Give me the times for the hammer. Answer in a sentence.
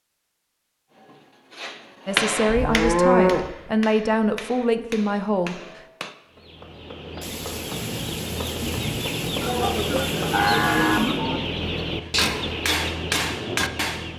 The hammer can be heard from 0.9 to 6.2 s and from 12.2 to 14.1 s.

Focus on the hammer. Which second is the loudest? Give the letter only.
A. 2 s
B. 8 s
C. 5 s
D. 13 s
A.